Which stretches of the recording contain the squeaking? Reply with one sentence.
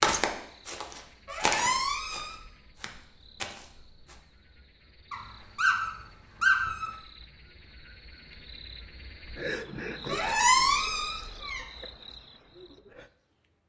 You can hear the squeaking from 1.2 to 2.5 s, from 5.1 to 6.9 s and from 10.1 to 11.6 s.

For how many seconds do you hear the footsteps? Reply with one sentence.
The footsteps can be heard for 4 seconds in total.